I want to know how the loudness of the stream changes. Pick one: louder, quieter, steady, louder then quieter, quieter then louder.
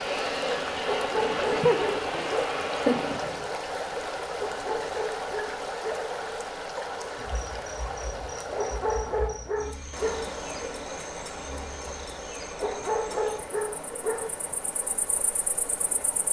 quieter.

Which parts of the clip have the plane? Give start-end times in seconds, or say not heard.
0.0-3.5.